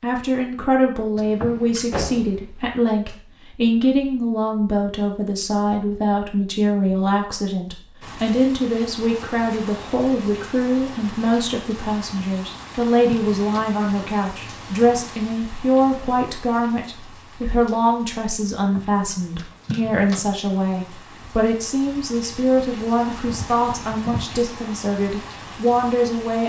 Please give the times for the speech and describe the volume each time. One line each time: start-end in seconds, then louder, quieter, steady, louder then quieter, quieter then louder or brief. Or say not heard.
0.0-26.4 steady.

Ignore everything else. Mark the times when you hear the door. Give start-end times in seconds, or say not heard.
1.8-2.8, 23.2-24.4.